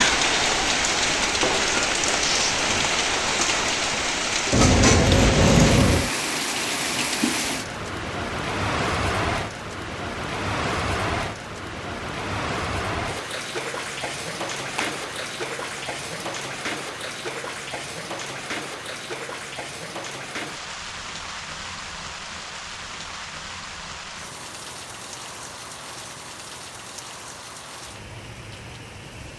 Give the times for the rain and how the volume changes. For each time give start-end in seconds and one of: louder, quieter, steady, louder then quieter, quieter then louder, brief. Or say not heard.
0.0-29.3 quieter.